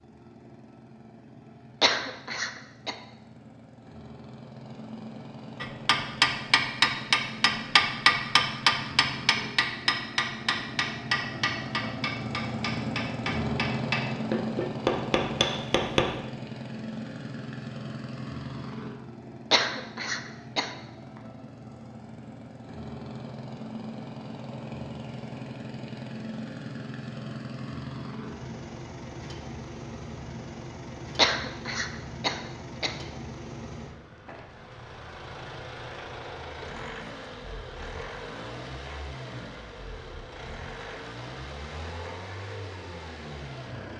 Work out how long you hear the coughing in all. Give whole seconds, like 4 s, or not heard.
4 s.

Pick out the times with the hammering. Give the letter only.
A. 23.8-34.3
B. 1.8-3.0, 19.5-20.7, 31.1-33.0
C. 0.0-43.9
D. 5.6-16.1
D.